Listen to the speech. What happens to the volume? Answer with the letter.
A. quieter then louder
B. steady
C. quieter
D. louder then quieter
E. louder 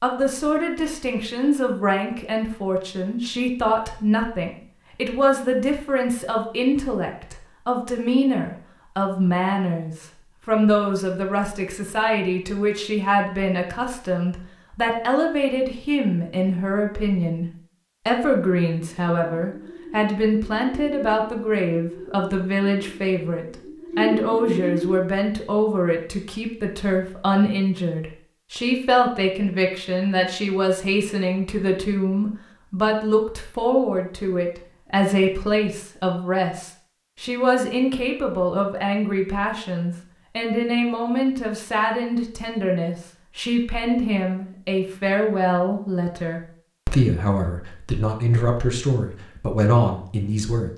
B.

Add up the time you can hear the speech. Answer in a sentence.
The speech can be heard for 50 seconds in total.